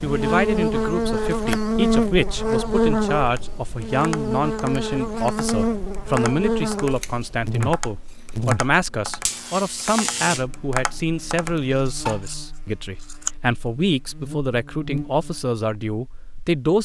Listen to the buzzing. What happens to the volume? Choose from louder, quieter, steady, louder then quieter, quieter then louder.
quieter.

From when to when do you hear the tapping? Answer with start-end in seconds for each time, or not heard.
3.2-12.2.